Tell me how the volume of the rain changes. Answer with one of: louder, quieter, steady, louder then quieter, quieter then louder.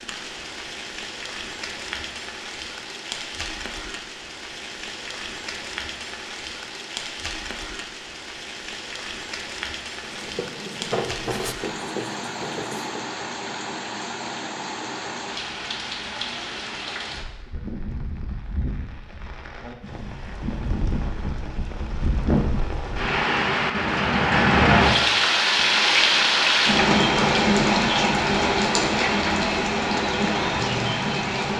louder.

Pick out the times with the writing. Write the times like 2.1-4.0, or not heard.
10.0-13.1.